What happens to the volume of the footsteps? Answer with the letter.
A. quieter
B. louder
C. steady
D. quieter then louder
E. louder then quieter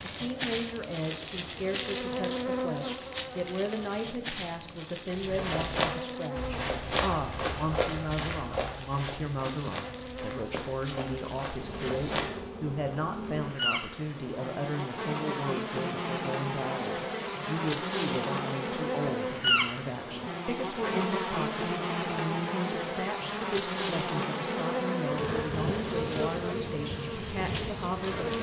A.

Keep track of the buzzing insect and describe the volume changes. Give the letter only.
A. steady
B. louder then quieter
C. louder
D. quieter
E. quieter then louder
E.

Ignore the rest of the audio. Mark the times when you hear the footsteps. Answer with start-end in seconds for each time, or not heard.
5.0-12.3.